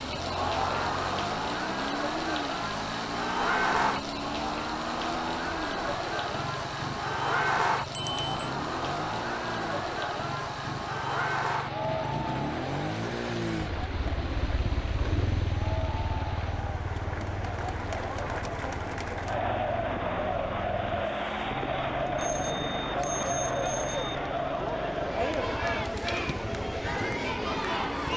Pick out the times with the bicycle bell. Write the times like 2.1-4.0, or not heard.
7.9-8.5, 22.1-24.1.